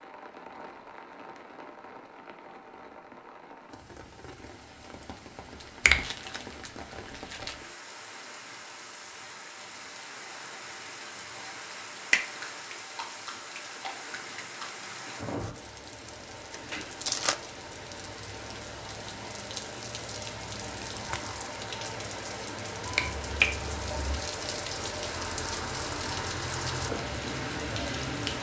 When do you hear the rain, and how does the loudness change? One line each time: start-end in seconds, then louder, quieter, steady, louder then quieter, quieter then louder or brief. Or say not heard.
0.0-28.3 louder.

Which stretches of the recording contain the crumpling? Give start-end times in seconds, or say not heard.
5.6-7.6, 16.5-17.4, 20.9-21.4.